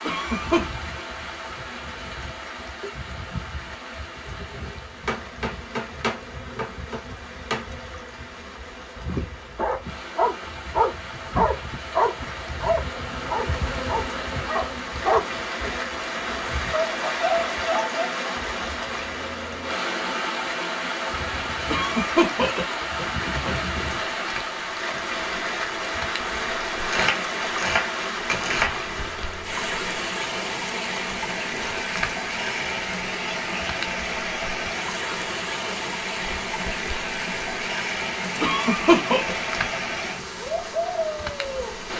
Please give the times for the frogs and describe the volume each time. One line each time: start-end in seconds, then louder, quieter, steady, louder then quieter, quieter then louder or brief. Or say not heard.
not heard.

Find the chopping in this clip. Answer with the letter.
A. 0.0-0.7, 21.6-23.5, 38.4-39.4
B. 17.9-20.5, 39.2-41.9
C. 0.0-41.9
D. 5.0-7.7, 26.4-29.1
D.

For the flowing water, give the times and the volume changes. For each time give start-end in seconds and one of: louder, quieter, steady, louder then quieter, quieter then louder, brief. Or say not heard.
0.0-41.9 louder.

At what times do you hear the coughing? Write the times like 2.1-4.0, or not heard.
0.0-0.7, 21.6-23.5, 38.4-39.4.